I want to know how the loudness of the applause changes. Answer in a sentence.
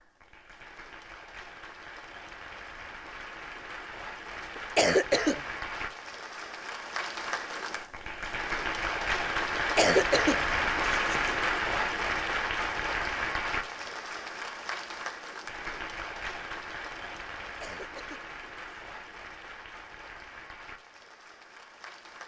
The loudness of the applause goes up, then down.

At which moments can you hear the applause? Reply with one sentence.
The applause can be heard from 0.0 to 22.2 s.